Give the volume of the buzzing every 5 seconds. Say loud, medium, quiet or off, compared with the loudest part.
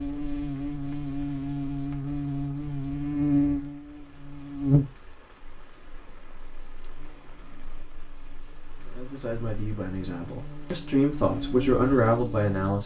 loud, quiet, medium.